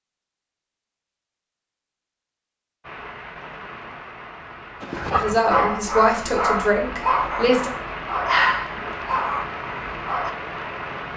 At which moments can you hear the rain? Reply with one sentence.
The rain can be heard from 2.8 to 11.1 s.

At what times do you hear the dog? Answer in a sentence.
You can hear the dog from 4.8 to 10.3 s.